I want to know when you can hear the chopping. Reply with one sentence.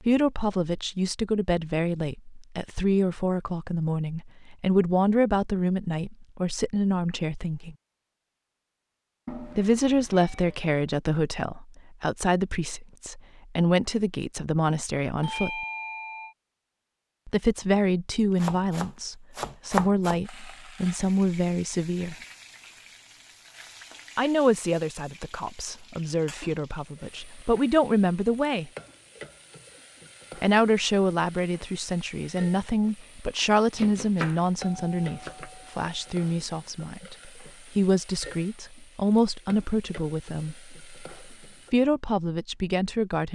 You can hear the chopping from 18.4 to 20.2 s and from 33.8 to 35.5 s.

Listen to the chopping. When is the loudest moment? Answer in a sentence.
The volume of the chopping peaks at 20 seconds.